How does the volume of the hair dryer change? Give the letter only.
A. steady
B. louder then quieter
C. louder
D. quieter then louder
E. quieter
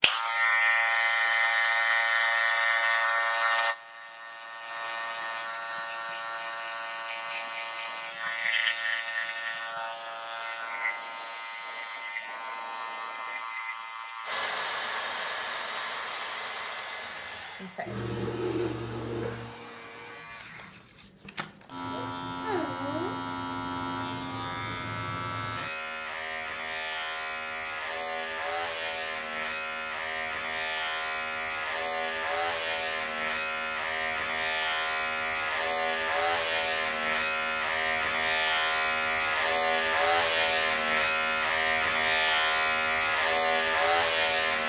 E.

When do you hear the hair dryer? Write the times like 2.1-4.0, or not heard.
14.2-20.2.